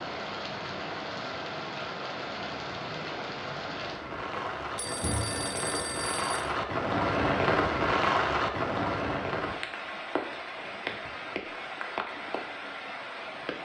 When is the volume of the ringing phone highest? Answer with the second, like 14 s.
5 s.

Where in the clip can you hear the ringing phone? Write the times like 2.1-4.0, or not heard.
4.3-6.5.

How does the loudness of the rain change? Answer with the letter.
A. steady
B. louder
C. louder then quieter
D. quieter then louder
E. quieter
C.